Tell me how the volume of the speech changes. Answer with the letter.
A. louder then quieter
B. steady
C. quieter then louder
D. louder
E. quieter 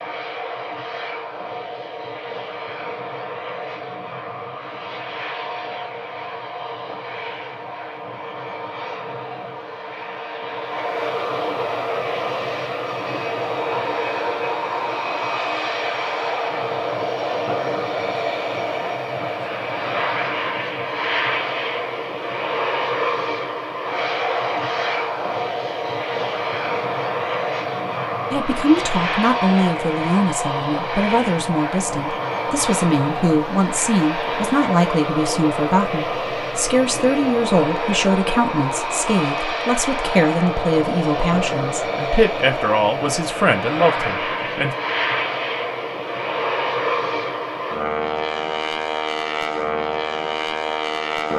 B.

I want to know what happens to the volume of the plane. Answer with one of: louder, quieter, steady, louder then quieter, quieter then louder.
louder.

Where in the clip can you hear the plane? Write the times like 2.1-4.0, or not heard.
0.0-51.3.